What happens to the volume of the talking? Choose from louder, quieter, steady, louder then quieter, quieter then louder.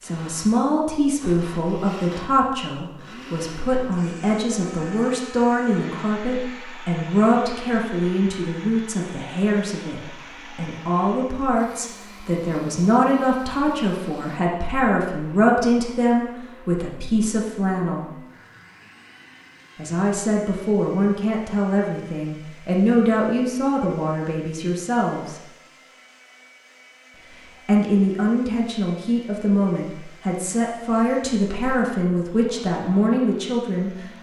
steady.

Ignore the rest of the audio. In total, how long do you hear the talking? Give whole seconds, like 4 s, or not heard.
31 s.